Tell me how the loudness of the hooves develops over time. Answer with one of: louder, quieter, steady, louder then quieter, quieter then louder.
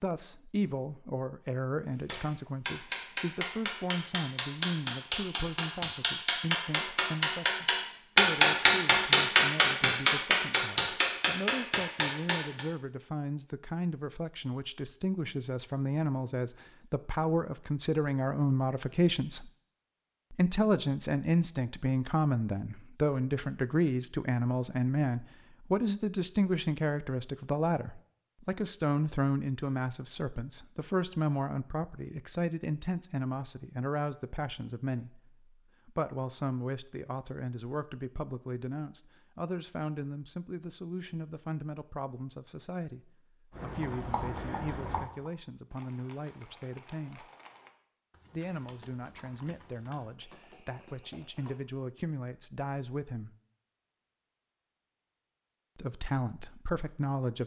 quieter.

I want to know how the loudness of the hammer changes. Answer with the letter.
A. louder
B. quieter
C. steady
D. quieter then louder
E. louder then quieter
E.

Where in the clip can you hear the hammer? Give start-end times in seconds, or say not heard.
2.0-12.7.